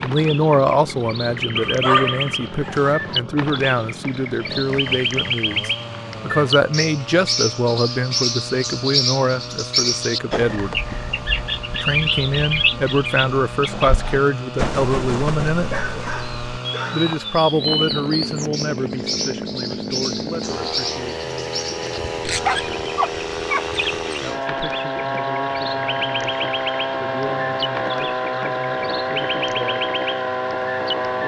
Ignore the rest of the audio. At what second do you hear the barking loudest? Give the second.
2 s.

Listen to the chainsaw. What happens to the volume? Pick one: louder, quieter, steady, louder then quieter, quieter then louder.
louder.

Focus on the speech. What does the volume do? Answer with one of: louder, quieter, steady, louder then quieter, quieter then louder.
quieter.